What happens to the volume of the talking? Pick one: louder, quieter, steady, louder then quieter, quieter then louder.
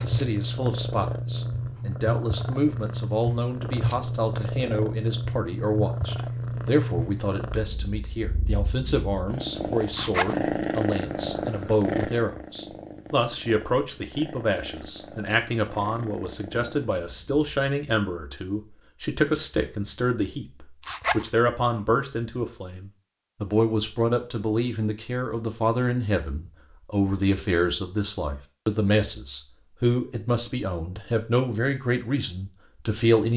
steady.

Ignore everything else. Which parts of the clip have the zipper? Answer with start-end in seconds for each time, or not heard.
9.9-10.4, 20.8-21.4.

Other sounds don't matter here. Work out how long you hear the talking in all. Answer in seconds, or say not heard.
33 s.